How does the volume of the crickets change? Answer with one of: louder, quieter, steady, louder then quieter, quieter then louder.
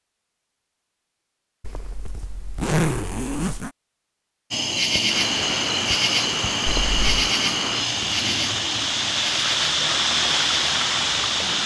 quieter.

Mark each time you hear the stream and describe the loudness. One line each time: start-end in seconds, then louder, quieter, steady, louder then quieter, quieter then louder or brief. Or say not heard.
5.0-11.6 louder.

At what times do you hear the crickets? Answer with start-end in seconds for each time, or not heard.
4.5-11.6.